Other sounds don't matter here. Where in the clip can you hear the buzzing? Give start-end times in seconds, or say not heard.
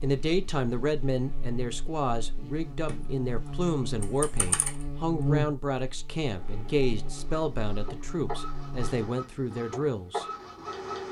0.0-8.9.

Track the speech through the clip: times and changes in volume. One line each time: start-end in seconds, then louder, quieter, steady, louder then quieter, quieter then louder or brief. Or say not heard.
0.0-10.2 steady.